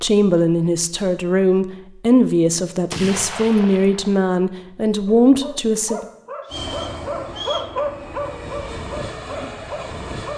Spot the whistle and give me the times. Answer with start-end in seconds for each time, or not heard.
6.5-7.8.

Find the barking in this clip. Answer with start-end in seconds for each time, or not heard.
5.0-10.3.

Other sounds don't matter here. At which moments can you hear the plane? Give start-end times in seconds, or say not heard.
6.5-10.3.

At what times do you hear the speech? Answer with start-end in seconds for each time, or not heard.
0.0-6.0.